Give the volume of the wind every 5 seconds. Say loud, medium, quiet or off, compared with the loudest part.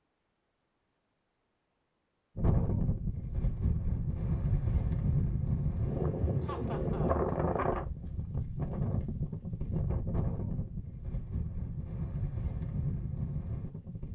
loud, loud, medium.